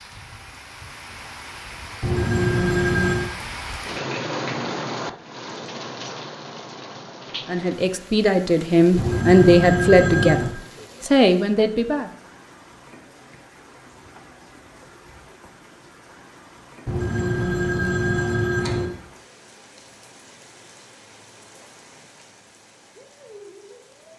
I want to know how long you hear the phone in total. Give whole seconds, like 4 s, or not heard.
5 s.